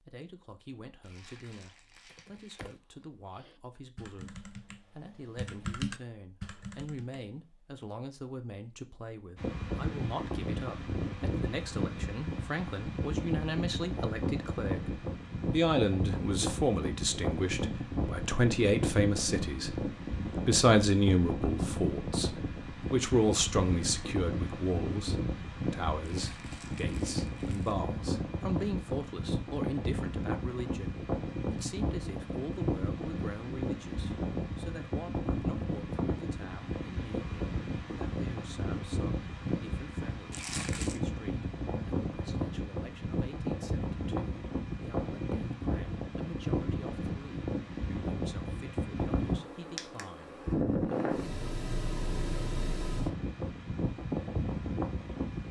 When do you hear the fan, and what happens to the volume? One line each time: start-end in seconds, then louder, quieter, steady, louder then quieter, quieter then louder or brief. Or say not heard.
9.3-55.4 steady.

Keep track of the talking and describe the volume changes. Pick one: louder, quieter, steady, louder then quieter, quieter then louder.
louder then quieter.